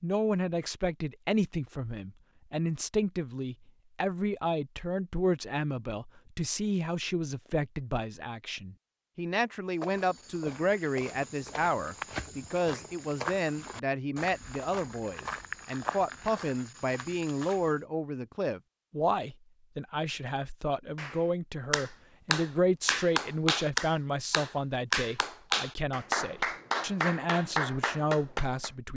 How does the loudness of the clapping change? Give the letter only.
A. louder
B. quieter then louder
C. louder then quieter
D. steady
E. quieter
D.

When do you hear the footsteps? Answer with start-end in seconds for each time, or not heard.
9.8-17.8.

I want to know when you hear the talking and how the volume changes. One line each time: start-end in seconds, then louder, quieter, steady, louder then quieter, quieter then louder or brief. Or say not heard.
0.0-28.9 steady.